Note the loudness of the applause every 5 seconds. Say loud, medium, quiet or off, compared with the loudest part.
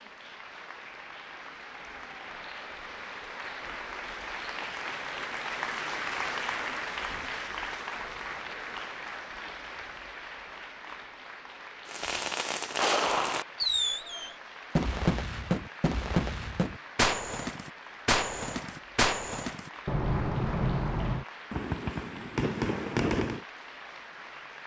medium, loud, medium, medium, medium.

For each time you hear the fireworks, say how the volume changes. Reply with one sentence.
The fireworks can be heard from 11.8 to 23.4 s, at a steady volume.